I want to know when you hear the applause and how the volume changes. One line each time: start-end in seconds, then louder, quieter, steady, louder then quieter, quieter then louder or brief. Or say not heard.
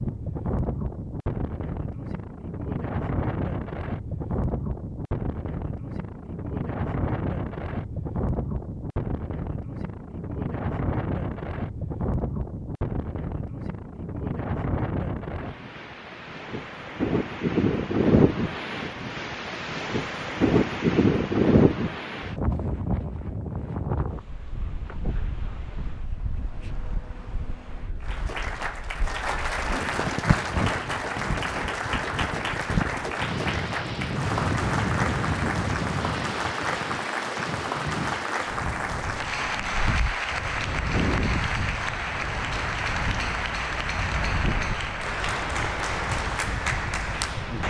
28.0-47.6 steady.